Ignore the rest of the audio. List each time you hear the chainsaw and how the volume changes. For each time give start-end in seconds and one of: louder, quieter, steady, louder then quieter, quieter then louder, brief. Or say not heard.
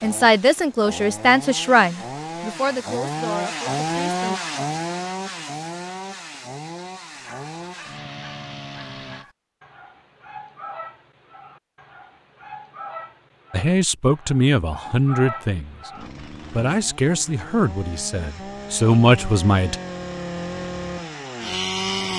0.0-9.2 louder then quieter
15.9-22.1 louder.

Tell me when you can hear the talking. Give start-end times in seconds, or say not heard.
0.0-4.4, 13.5-19.8.